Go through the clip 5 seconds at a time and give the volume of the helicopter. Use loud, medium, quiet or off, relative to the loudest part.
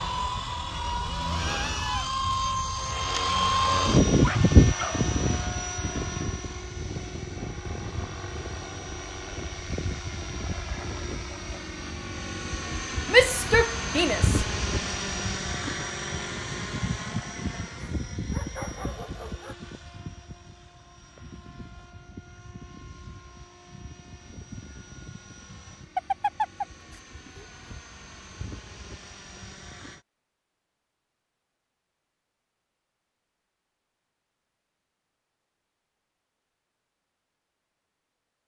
loud, medium, medium, medium, quiet, quiet, off, off.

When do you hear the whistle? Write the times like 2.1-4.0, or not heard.
not heard.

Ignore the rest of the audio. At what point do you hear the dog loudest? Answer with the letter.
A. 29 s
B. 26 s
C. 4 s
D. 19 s
B.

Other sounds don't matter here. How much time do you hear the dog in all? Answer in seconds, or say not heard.
4 s.